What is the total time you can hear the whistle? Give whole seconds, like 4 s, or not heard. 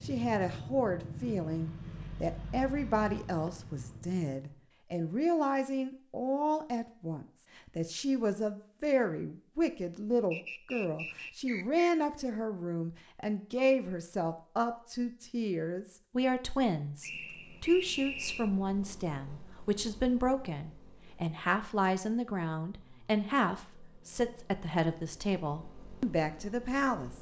3 s.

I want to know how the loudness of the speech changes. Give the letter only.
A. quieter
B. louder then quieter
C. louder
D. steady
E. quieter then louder
D.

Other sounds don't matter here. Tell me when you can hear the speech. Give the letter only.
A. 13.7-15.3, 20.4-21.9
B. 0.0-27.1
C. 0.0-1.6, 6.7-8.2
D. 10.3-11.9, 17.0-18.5
B.